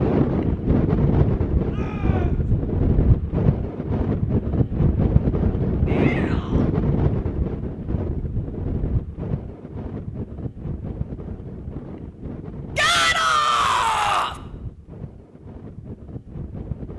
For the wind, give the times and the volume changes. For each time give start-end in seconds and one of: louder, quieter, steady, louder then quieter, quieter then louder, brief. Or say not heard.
0.0-16.9 quieter.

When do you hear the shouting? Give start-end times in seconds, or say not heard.
1.6-2.5, 5.8-6.7, 12.8-14.4.